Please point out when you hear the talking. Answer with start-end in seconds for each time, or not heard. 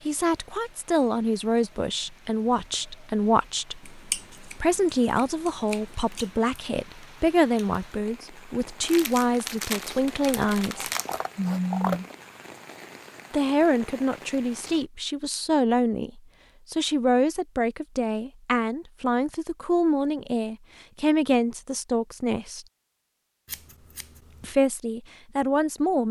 0.1-10.9, 13.3-22.6, 24.4-26.0.